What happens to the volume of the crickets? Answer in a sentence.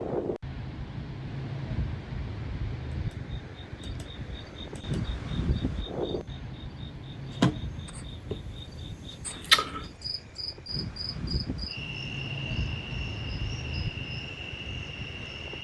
The volume of the crickets goes up, then down.